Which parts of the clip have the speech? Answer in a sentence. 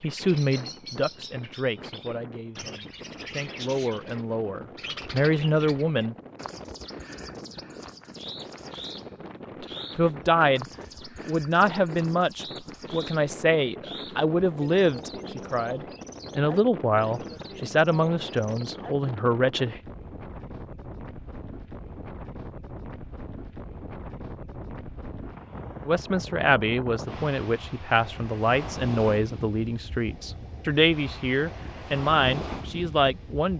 The speech can be heard from 0.0 to 6.2 s, from 9.6 to 10.7 s, from 11.2 to 19.8 s and from 25.9 to 33.5 s.